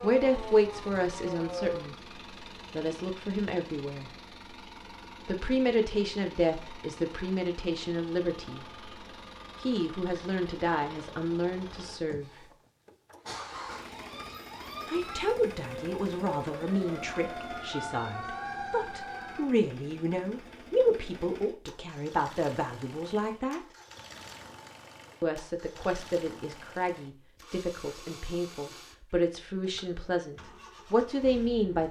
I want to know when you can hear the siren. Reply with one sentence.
You can hear the siren from 0.0 to 1.9 s and from 13.3 to 19.4 s.